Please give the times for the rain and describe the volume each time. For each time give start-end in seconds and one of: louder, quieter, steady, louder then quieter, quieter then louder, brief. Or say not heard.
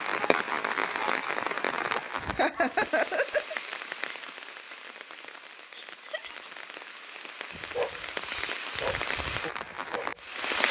0.0-10.6 quieter then louder.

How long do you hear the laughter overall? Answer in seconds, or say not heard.
2 s.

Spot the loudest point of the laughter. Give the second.
3 s.